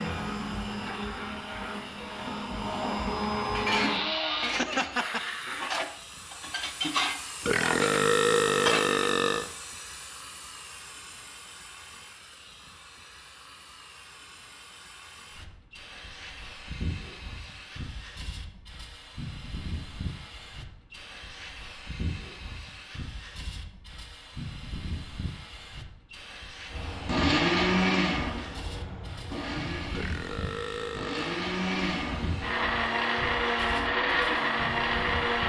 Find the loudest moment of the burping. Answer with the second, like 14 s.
8 s.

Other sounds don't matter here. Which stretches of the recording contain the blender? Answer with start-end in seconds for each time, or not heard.
0.0-4.5, 26.7-35.4.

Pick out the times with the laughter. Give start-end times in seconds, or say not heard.
4.4-5.3.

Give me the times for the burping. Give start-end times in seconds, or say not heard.
7.4-9.5, 29.9-31.4.